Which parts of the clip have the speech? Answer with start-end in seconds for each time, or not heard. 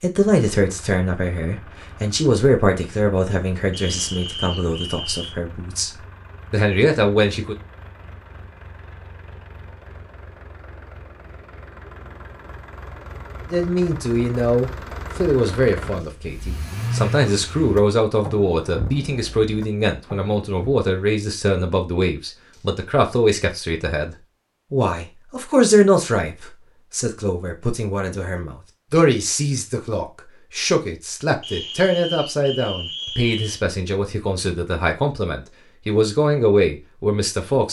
0.0-7.5, 13.5-37.6.